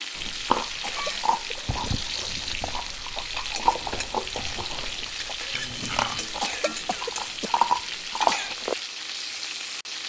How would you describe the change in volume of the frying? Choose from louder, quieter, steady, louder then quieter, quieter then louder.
steady.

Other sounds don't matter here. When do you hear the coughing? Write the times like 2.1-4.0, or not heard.
0.2-2.0, 5.8-8.6.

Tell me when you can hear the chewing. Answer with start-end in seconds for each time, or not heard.
0.1-8.8.